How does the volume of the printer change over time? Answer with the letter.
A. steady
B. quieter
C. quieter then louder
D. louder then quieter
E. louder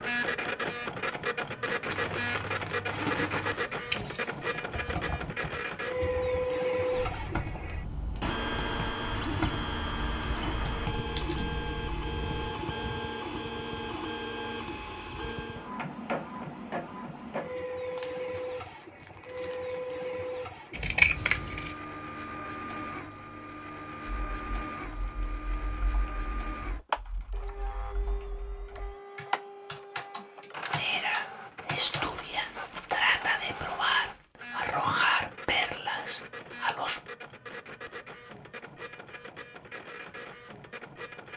B.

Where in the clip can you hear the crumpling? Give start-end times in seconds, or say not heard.
1.9-3.6, 17.9-20.2, 31.8-34.2.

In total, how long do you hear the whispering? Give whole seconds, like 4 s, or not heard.
6 s.